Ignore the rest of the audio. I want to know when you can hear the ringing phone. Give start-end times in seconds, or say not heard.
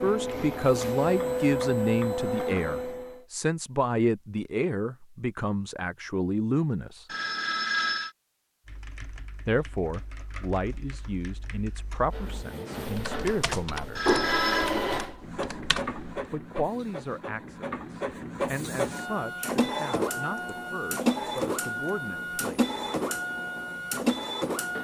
7.0-8.1, 13.9-14.7.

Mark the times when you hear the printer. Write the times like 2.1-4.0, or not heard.
0.0-3.2, 12.1-24.8.